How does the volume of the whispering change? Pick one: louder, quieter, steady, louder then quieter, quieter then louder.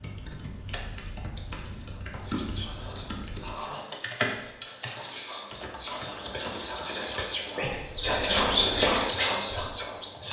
louder.